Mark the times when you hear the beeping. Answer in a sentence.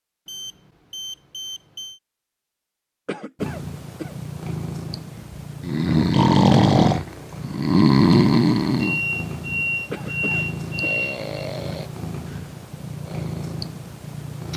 The beeping can be heard from 0.2 to 2.0 s and from 8.8 to 11.3 s.